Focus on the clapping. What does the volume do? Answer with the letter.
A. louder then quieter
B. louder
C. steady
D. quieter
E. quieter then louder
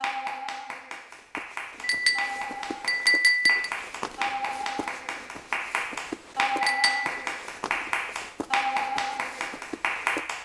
B.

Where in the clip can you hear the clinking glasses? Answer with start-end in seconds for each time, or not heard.
1.8-3.7, 6.6-7.2.